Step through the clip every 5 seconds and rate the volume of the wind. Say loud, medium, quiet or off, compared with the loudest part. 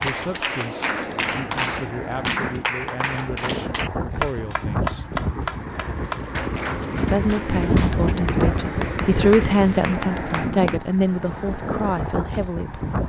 medium, loud, loud.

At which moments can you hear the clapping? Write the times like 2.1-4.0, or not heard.
0.0-10.8.